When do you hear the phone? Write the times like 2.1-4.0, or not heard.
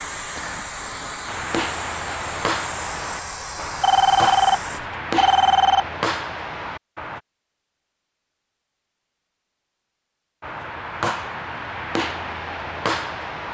3.8-5.8.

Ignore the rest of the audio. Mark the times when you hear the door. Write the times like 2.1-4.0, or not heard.
not heard.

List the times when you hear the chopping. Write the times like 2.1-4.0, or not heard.
1.2-7.2, 10.4-13.5.